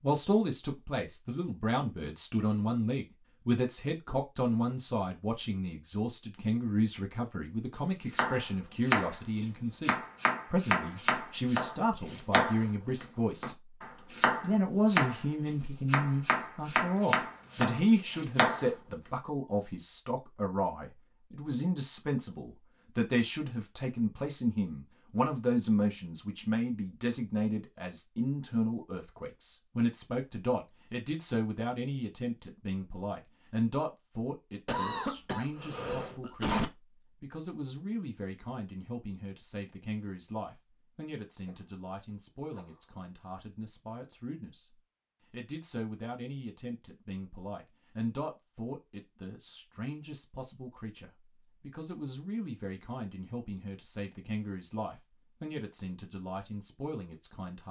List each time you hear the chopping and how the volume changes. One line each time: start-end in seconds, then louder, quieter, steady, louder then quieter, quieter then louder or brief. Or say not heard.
8.1-18.7 steady.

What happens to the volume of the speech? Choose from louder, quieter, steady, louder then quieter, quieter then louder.
quieter.